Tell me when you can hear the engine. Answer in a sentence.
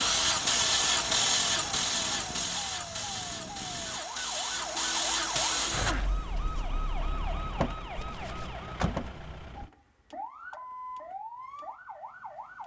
The engine can be heard from 0.0 to 6.0 s.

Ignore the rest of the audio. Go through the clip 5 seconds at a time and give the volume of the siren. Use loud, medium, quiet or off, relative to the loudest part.
medium, loud, medium.